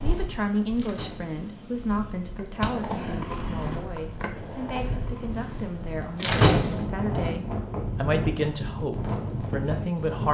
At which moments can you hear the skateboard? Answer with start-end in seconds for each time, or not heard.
2.4-5.8.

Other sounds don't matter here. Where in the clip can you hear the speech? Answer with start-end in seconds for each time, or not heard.
0.0-10.2.